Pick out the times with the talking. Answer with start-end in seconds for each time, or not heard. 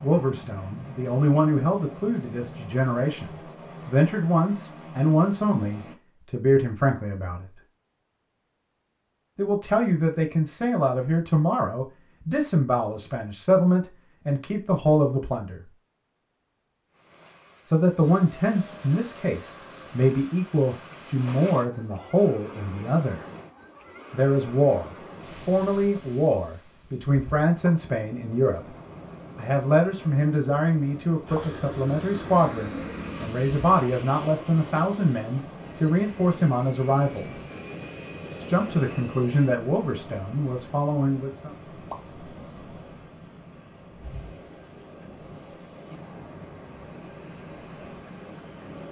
0.0-7.6, 9.3-15.7, 17.6-23.2, 24.1-28.8, 29.4-37.4, 38.4-41.5.